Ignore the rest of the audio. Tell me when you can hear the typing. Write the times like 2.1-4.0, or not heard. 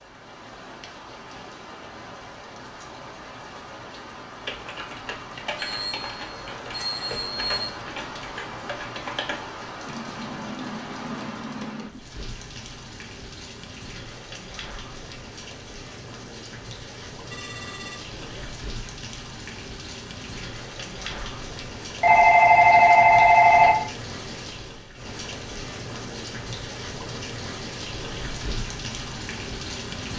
4.4-12.0.